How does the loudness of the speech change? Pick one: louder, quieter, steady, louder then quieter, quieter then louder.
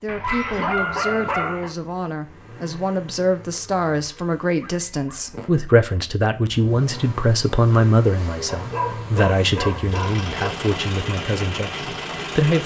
louder then quieter.